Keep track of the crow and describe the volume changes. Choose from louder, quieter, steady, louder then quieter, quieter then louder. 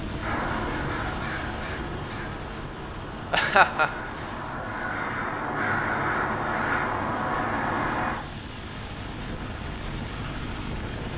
quieter then louder.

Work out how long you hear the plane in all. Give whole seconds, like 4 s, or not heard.
11 s.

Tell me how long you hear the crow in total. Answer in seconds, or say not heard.
8 s.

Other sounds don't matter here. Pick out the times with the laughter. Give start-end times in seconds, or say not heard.
3.3-4.2.